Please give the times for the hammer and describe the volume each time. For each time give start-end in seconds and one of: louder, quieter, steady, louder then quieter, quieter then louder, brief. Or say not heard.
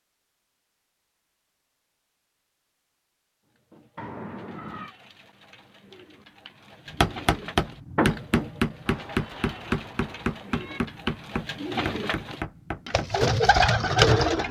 6.9-14.4 quieter.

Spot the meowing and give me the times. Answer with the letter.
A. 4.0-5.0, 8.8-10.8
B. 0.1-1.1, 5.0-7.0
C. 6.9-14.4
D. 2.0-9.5
A.